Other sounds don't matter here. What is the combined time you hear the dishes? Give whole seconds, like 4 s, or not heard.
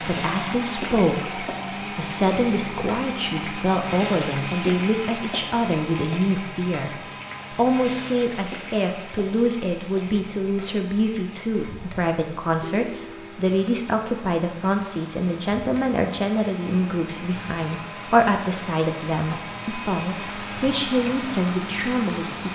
not heard.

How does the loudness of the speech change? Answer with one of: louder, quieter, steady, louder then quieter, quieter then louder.
steady.